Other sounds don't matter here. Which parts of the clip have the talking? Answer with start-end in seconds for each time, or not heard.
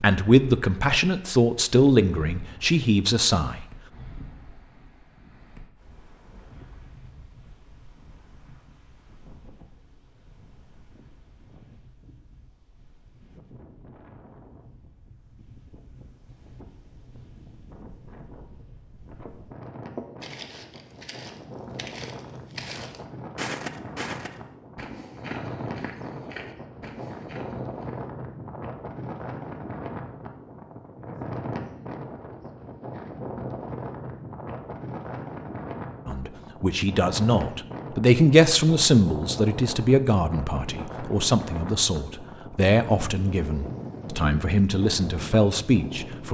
0.0-3.6, 36.0-46.2.